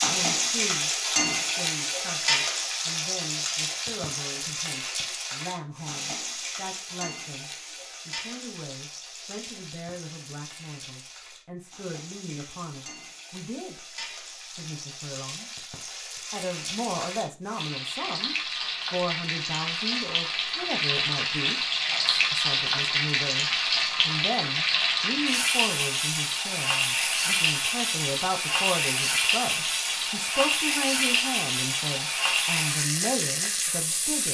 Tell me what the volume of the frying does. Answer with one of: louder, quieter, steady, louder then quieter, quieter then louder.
quieter then louder.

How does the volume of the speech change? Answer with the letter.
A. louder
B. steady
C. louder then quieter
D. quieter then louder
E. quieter
A.